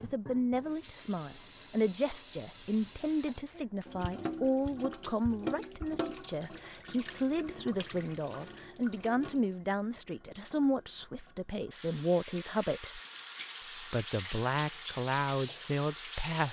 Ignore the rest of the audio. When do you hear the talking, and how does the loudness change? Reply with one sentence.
You can hear the talking from 0.0 to 13.0 s, at a steady volume; and briefly from 13.8 to 16.4 s.